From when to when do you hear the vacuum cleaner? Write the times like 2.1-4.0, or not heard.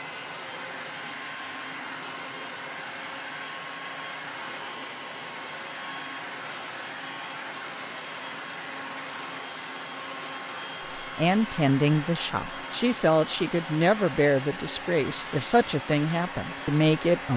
0.0-17.3.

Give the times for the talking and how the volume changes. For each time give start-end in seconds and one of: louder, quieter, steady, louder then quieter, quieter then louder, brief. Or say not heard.
10.9-17.3 steady.